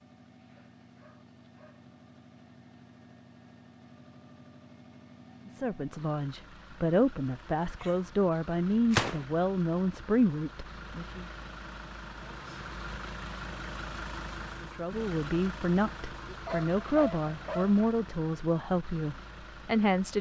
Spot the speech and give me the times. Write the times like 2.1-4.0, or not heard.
5.5-11.2, 14.6-20.1.